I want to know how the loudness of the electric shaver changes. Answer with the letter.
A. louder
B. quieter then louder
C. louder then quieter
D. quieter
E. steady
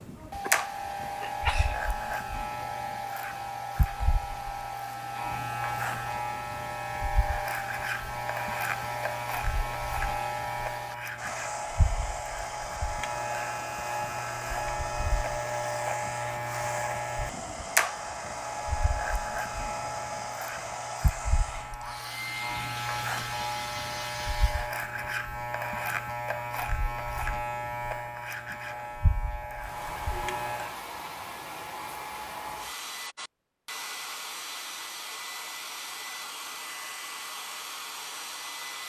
E.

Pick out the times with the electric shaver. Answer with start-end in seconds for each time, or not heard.
0.0-30.8.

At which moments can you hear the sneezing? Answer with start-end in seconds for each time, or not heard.
0.4-1.8.